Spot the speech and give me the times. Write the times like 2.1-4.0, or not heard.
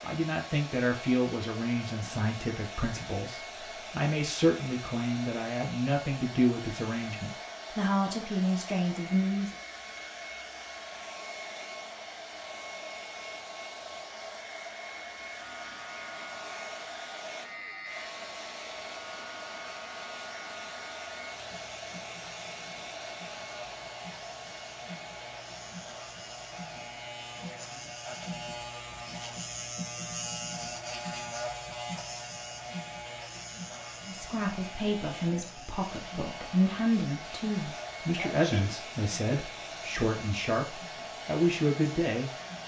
0.0-9.5, 34.0-42.3.